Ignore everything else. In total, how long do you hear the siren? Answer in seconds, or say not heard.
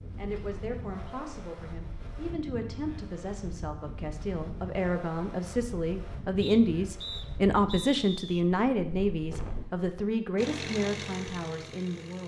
not heard.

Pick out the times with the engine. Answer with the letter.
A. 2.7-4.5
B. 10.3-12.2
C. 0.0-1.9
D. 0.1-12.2
B.